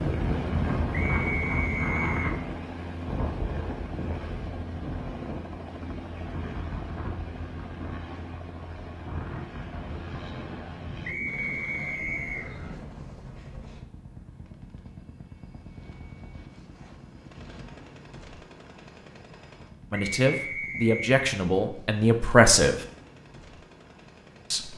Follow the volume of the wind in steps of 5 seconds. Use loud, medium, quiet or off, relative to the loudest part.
loud, medium, medium, off, off.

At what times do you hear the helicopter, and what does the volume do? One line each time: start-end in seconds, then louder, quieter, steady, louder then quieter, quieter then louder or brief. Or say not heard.
0.0-24.7 quieter.